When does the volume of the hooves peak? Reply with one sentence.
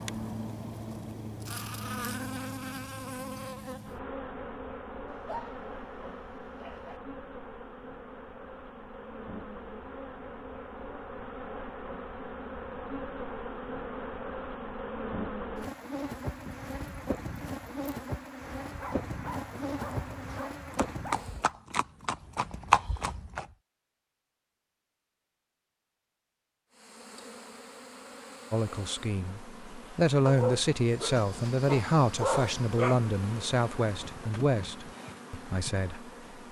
The volume of the hooves peaks at 23 seconds.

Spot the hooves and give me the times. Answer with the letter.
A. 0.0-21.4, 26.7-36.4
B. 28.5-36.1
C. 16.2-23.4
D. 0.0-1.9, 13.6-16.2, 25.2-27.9
C.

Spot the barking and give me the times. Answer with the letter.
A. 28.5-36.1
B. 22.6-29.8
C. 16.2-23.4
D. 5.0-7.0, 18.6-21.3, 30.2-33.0
D.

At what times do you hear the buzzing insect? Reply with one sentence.
You can hear the buzzing insect from 0.0 to 21.4 s and from 26.7 to 36.4 s.